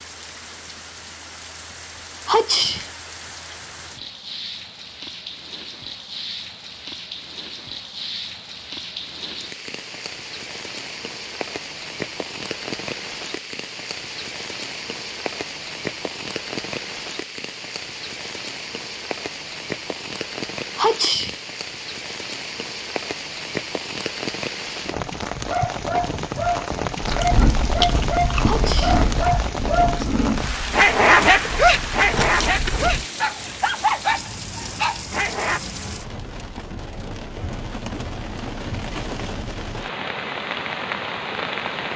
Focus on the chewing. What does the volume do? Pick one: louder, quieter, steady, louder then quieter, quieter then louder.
quieter then louder.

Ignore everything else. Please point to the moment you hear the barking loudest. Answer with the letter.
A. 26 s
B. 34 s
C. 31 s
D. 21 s
C.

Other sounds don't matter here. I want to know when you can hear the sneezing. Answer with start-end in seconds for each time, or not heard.
2.2-2.9, 20.8-21.4, 28.4-29.0.